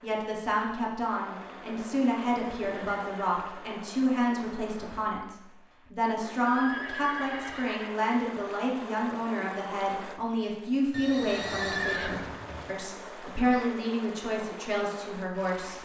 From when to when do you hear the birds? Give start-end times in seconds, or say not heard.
not heard.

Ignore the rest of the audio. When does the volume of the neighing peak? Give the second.
12 s.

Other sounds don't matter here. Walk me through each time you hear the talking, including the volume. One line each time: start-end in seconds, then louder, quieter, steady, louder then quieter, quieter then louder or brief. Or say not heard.
0.0-15.8 steady.